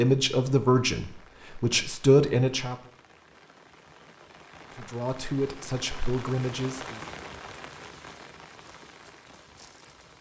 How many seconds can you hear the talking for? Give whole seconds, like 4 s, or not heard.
5 s.